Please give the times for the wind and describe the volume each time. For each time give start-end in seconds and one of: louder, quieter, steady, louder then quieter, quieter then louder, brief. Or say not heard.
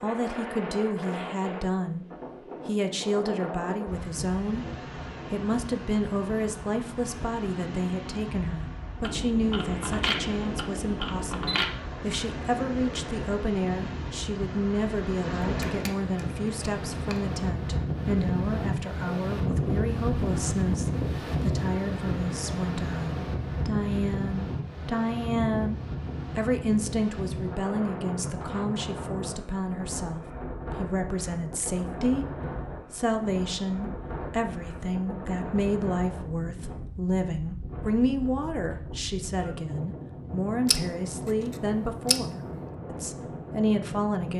0.0-44.3 louder then quieter.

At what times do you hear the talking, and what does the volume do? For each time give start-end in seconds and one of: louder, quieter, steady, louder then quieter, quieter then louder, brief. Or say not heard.
0.0-2.0 brief
2.6-4.7 brief
5.3-32.2 steady
32.9-44.3 steady.